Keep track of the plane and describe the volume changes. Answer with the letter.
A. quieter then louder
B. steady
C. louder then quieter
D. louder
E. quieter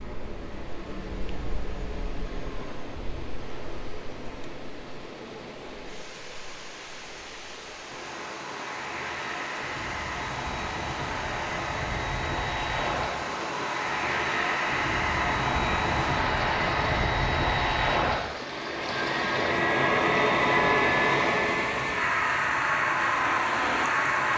D.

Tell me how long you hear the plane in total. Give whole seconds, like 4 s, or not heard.
24 s.